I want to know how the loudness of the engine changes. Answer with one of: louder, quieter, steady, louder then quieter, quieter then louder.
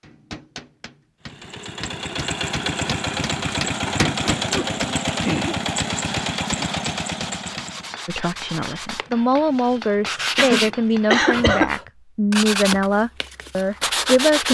steady.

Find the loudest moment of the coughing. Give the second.
11 s.